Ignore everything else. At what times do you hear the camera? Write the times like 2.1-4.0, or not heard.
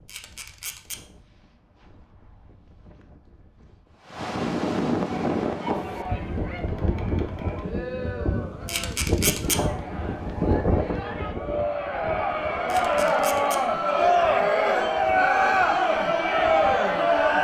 0.1-0.9, 8.7-9.6, 12.7-13.6.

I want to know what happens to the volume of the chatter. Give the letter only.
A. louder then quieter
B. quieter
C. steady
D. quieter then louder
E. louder
E.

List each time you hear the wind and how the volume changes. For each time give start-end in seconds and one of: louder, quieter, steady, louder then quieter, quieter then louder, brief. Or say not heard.
0.0-17.3 louder then quieter.